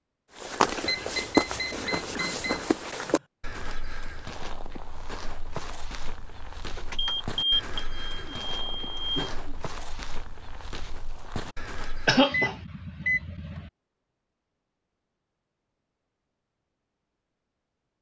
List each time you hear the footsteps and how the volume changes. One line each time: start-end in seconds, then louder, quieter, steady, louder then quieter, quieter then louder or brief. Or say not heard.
0.3-12.2 quieter.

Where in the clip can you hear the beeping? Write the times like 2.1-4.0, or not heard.
0.8-2.6, 6.8-9.3, 12.3-13.7.